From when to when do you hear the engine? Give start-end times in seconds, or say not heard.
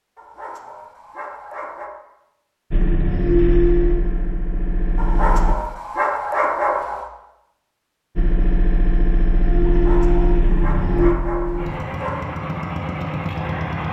2.7-5.5, 8.2-13.8.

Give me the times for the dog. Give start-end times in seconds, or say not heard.
0.1-1.9, 5.0-7.0, 9.7-12.2.